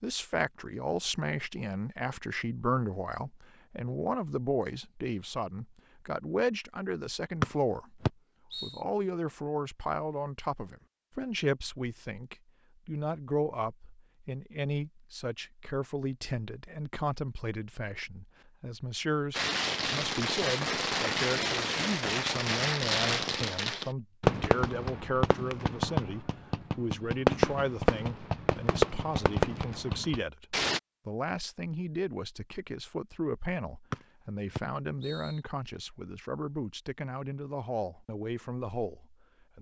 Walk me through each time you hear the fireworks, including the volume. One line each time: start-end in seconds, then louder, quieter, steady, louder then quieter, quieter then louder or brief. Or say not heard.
19.3-30.8 steady.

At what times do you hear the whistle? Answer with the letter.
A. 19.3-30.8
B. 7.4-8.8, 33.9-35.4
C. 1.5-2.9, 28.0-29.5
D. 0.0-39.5
B.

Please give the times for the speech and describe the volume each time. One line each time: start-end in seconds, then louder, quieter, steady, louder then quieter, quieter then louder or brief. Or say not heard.
0.0-39.5 steady.